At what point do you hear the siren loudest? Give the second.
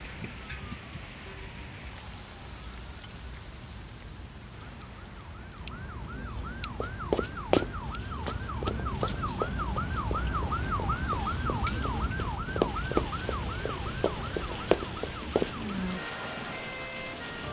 11 s.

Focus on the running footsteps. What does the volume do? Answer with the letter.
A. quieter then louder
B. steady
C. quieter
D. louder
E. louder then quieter
A.